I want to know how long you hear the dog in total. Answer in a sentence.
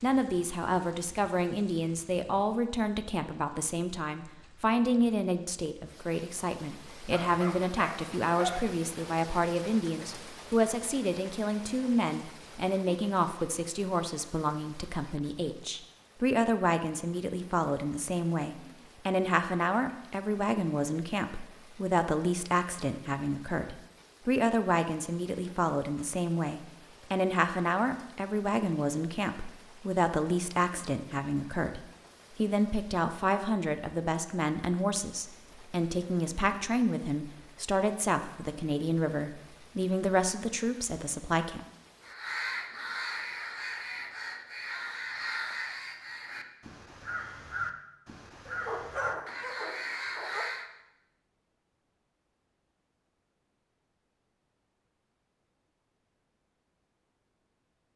You can hear the dog for 4 seconds altogether.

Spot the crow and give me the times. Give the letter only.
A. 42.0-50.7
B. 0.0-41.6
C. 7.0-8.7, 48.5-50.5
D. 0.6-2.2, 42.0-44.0
A.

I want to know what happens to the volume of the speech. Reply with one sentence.
The loudness of the speech stays about the same.